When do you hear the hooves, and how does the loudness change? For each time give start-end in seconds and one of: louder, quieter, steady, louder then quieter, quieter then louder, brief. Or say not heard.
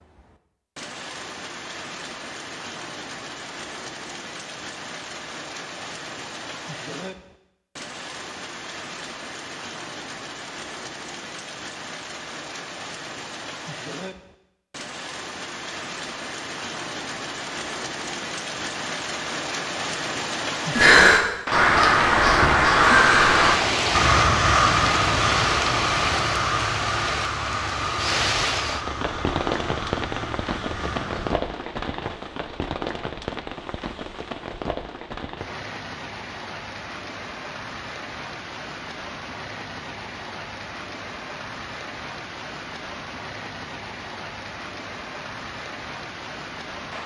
not heard.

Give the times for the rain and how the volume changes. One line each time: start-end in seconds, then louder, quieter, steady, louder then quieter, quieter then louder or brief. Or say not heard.
0.0-47.0 louder then quieter.